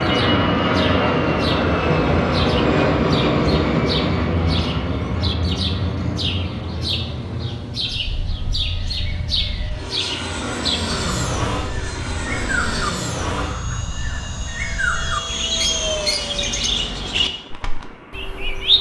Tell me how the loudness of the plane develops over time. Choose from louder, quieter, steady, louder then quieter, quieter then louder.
quieter.